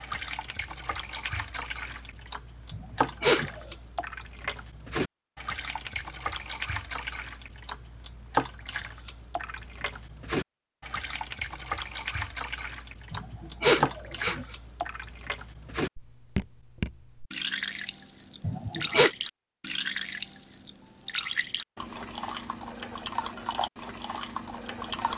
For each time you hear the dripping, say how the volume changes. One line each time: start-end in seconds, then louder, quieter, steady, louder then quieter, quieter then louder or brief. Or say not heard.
0.0-25.1 steady.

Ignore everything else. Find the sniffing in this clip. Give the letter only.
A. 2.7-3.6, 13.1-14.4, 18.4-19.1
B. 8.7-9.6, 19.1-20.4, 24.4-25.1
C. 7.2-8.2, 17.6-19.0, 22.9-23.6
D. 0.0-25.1
A.